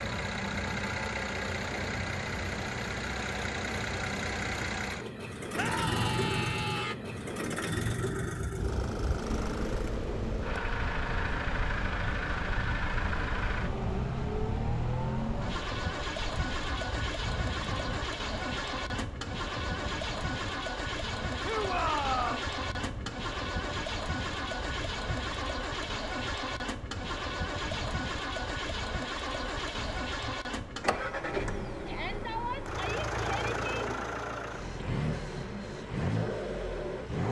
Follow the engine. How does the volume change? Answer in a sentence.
The volume of the engine stays about the same.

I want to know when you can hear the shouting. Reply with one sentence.
You can hear the shouting from 5.5 to 7.0 s, from 21.4 to 22.5 s and from 31.9 to 33.6 s.